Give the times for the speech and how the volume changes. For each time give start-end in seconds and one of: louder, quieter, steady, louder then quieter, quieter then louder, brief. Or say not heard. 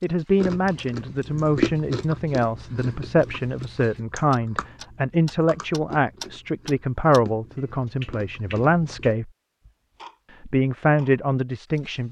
0.0-9.3 steady
10.4-12.0 brief.